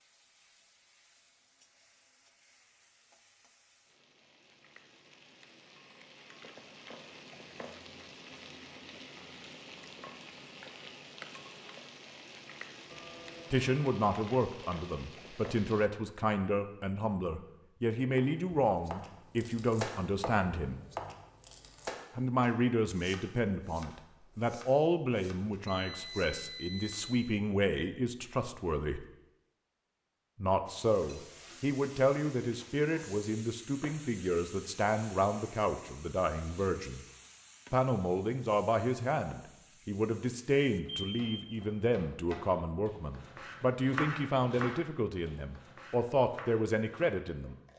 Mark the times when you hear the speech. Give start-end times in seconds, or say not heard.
13.5-20.8, 22.1-29.1, 30.4-37.0, 37.7-47.5.